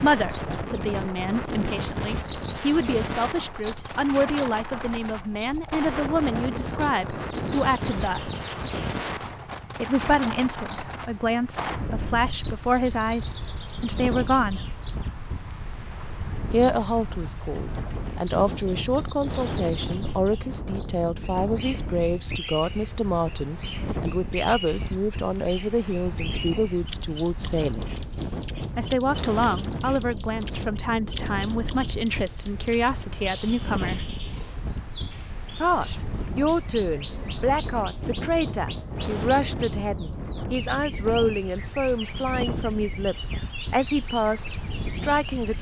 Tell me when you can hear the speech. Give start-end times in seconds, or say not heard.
0.0-8.3, 9.8-14.8, 16.5-27.9, 28.8-34.1, 35.6-45.5.